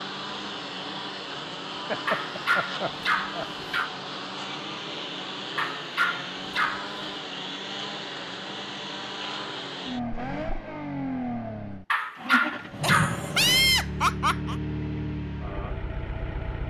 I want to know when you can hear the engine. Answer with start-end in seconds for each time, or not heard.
0.0-16.6.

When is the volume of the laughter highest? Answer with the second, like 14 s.
14 s.